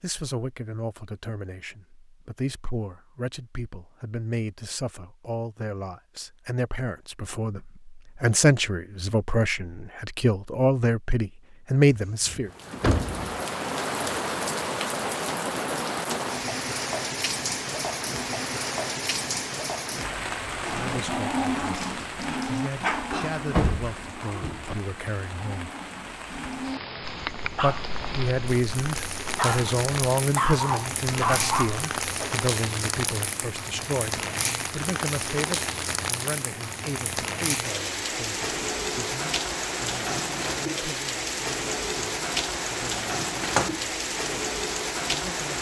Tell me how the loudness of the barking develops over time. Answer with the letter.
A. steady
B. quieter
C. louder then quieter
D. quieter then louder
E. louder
D.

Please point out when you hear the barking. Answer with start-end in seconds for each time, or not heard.
20.6-32.4.